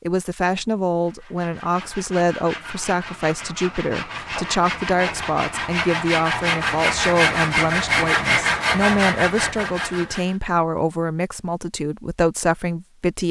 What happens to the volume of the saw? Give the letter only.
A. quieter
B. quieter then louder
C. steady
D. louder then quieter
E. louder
E.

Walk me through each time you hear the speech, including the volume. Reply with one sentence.
The speech can be heard from 0.0 to 13.2 s, at a steady volume.